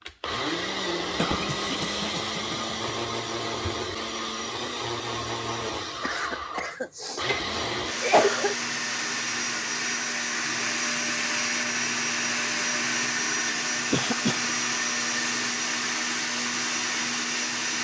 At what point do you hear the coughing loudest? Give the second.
8 s.